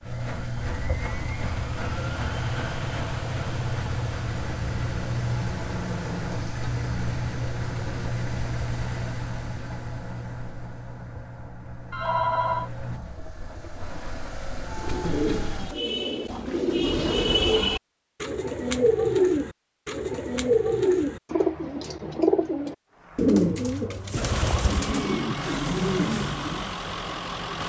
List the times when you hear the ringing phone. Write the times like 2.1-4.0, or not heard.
11.9-12.7.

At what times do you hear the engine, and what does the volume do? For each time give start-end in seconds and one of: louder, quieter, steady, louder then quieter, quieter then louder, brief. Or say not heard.
0.0-15.8 quieter
22.9-27.6 louder.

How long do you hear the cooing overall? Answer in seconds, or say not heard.
12 s.